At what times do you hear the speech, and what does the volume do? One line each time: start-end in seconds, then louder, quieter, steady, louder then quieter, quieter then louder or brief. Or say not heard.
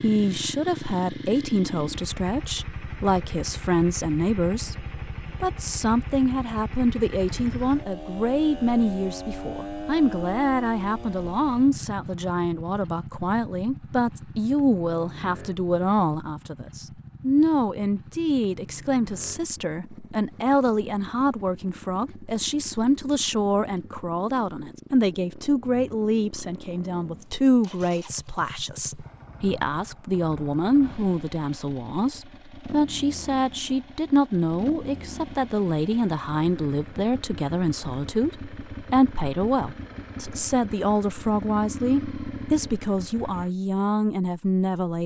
0.0-45.0 steady.